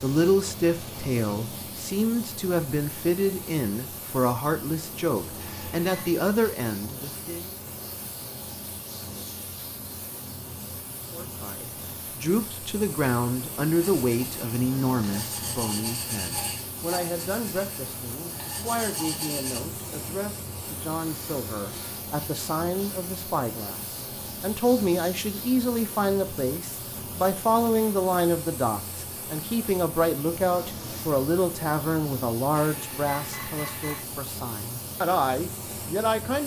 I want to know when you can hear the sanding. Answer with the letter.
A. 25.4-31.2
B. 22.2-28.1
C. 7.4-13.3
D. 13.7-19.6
D.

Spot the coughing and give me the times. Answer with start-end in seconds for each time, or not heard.
not heard.